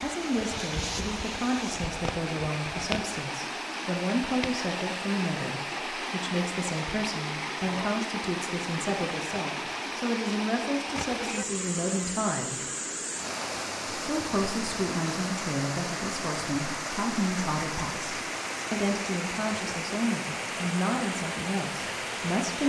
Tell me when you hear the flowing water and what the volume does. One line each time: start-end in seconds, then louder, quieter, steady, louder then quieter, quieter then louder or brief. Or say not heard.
0.0-22.6 steady.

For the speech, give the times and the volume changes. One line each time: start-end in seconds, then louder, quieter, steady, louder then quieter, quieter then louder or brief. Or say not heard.
0.0-12.6 steady
13.9-22.6 steady.